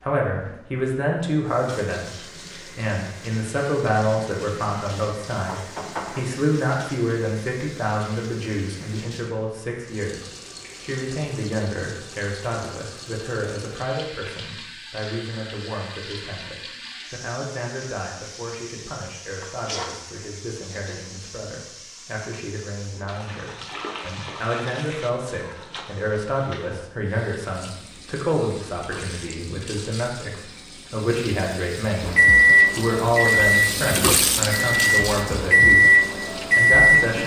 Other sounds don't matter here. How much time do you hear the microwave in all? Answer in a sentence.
You can hear the microwave for 5 seconds altogether.